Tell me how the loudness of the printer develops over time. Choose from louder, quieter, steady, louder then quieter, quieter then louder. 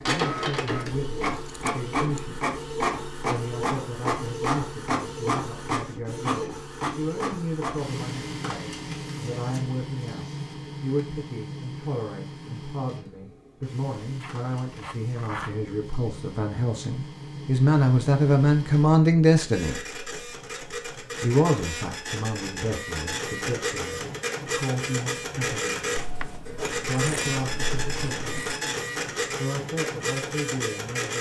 quieter then louder.